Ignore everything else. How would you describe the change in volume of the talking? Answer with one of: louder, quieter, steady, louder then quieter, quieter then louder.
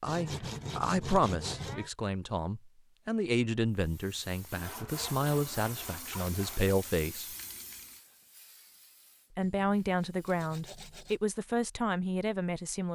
steady.